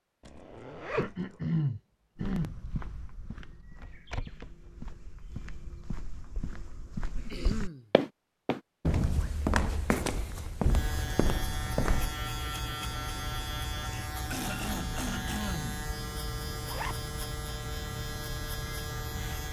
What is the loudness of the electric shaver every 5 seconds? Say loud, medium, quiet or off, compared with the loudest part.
off, off, loud, loud.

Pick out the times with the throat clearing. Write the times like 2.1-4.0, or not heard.
0.9-2.5, 7.3-7.9, 13.9-15.9.